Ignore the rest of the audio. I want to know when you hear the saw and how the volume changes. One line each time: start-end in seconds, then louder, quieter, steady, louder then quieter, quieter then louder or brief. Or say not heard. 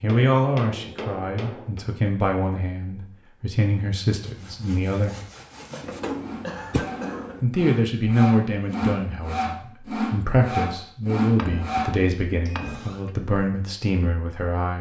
4.0-13.0 louder.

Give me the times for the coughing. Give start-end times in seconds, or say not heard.
5.7-7.3.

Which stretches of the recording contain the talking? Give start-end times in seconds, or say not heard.
0.0-5.2, 7.4-14.7.